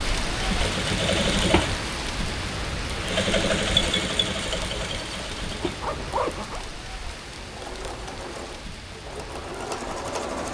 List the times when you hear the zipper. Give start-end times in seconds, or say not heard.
5.3-6.7.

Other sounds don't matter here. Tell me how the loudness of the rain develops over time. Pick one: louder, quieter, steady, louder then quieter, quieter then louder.
quieter.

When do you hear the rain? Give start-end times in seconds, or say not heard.
0.0-10.5.